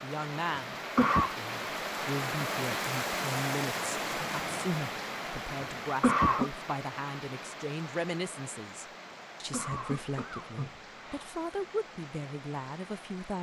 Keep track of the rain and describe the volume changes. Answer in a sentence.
The loudness of the rain goes down.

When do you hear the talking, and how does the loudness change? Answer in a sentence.
The talking can be heard from 0.0 to 13.3 s, at a steady volume.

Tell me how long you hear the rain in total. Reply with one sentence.
You can hear the rain for 13 seconds altogether.